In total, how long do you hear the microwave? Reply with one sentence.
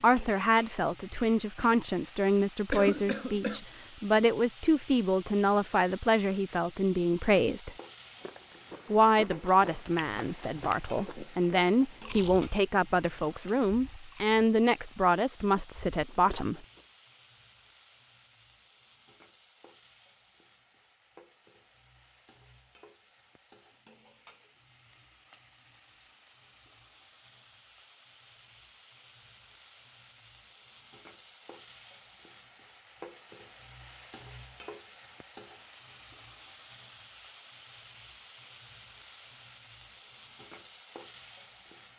The microwave can't be heard in this clip.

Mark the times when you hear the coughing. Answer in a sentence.
The coughing can be heard from 2.7 to 3.6 s.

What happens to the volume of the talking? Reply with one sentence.
The volume of the talking stays about the same.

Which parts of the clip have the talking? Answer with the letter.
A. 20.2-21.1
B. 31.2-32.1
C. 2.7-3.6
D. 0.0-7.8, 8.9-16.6
D.